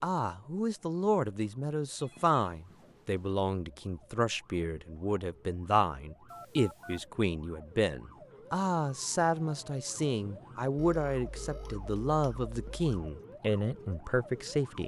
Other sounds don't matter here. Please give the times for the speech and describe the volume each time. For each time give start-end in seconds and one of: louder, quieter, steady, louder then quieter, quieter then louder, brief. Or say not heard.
0.0-14.8 steady.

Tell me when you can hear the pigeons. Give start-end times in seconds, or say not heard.
not heard.